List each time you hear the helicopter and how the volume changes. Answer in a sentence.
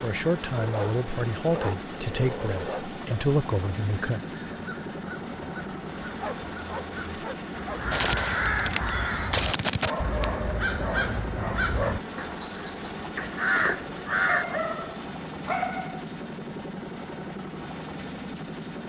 You can hear the helicopter from 0.0 to 18.8 s, at a steady volume.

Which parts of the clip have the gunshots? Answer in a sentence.
The gunshots can be heard from 7.9 to 9.9 s.